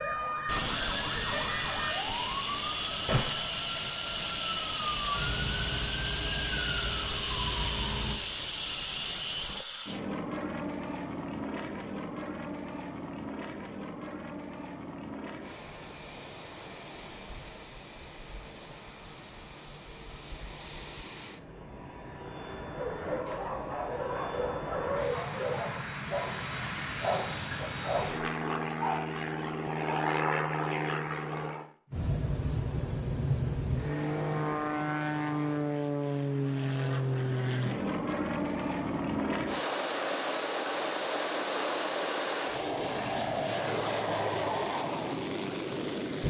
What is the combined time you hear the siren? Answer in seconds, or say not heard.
8 s.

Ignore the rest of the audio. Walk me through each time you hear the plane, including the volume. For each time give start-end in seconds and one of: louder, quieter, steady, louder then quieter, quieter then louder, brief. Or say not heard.
0.3-46.2 quieter then louder.